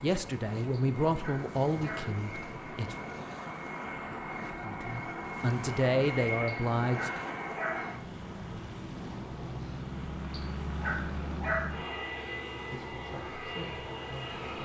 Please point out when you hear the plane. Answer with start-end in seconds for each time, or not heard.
0.0-14.6.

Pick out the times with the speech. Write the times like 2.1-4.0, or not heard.
0.0-3.0, 4.6-7.1, 12.7-14.4.